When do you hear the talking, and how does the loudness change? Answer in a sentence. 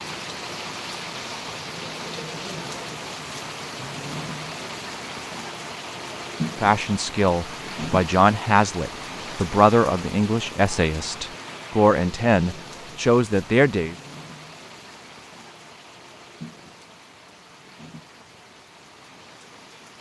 The talking can be heard from 6.6 to 13.9 s, at a steady volume.